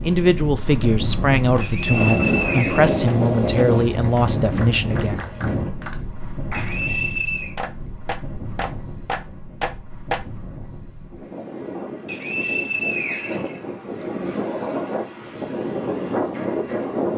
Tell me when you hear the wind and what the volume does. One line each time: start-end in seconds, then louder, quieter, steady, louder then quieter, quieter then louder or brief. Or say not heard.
0.0-17.1 quieter then louder.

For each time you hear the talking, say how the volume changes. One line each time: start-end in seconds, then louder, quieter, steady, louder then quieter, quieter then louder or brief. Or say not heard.
0.0-5.2 steady.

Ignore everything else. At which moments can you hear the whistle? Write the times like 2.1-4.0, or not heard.
1.6-3.0, 6.5-7.5, 12.1-14.1.